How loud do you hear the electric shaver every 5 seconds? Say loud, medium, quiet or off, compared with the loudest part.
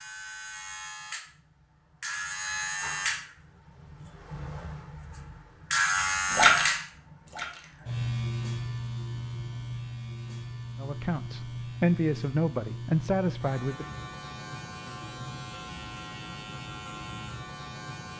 medium, loud, medium, medium.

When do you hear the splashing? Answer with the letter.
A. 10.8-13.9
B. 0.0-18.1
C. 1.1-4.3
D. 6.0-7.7
D.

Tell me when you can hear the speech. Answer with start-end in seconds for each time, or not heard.
10.8-13.9.